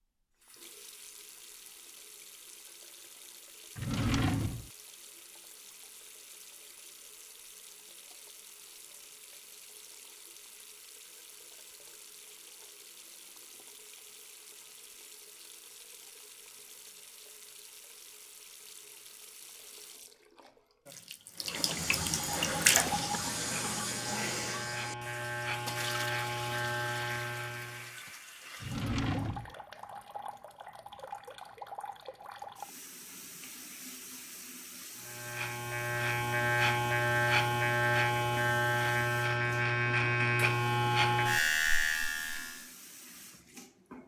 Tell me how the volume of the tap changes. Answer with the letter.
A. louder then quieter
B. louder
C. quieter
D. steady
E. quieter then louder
A.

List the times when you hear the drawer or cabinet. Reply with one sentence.
You can hear the drawer or cabinet from 3.8 to 4.7 s and from 28.6 to 29.6 s.